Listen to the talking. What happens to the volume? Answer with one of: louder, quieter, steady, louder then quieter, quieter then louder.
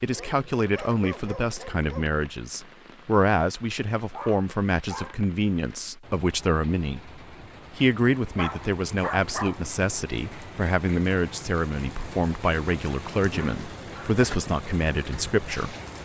steady.